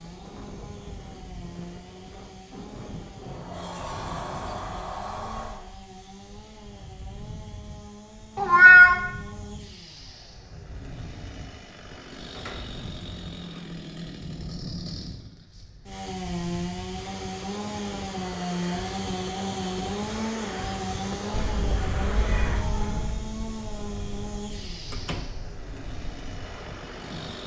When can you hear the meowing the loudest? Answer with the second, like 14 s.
9 s.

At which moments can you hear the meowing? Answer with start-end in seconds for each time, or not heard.
8.3-9.0, 21.3-23.2.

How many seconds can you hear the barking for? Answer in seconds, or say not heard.
not heard.